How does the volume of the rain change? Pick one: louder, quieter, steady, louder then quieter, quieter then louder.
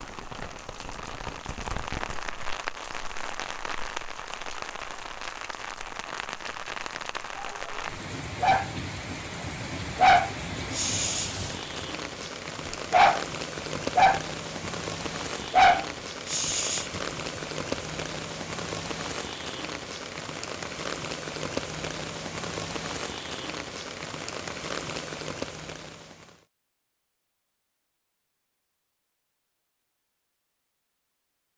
steady.